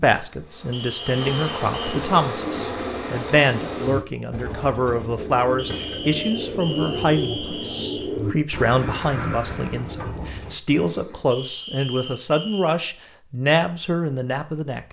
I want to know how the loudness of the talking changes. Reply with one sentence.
The volume of the talking stays about the same.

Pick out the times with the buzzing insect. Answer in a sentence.
The buzzing insect can be heard from 0.2 to 4.0 s.